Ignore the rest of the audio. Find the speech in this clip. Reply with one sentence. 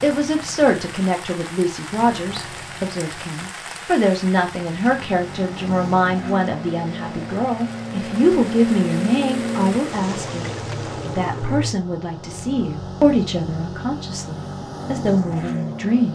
You can hear the speech from 0.0 to 16.1 s.